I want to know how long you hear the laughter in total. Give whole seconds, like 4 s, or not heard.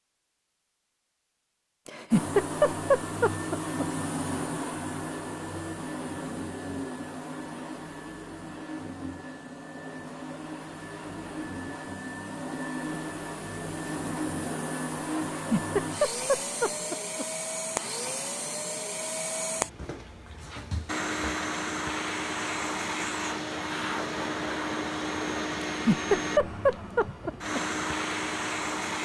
6 s.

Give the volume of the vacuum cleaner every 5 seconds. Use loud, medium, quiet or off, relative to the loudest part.
loud, medium, loud, loud, loud, loud.